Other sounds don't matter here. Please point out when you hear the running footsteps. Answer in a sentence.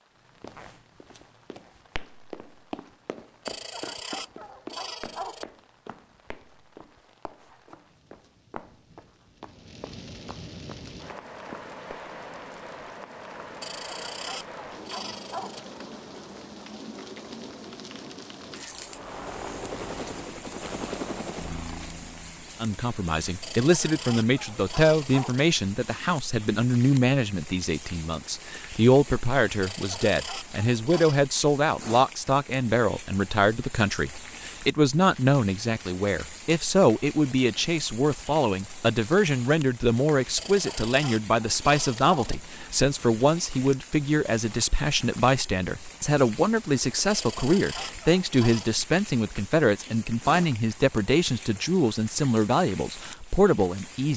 You can hear the running footsteps from 0.4 to 12.3 s.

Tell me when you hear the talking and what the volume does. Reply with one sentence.
You can hear the talking from 22.6 to 54.1 s, at a steady volume.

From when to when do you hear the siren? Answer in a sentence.
You can't hear the siren here.